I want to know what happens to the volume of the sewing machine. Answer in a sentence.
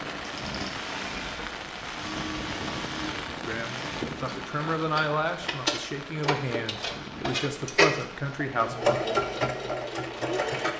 The volume of the sewing machine goes up.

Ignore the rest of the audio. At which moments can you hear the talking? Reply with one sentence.
You can hear the talking from 3.5 to 9.0 s.